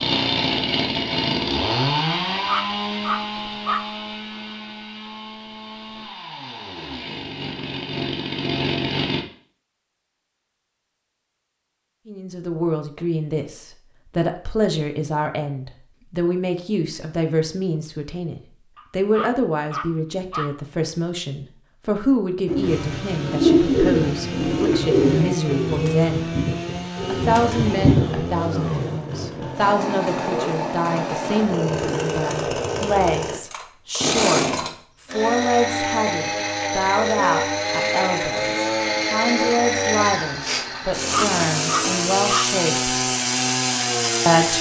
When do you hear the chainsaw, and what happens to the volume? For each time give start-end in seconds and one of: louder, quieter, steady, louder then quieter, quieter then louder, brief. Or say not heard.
0.0-9.2 quieter then louder
22.6-44.5 louder.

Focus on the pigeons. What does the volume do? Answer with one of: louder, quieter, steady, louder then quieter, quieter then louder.
quieter then louder.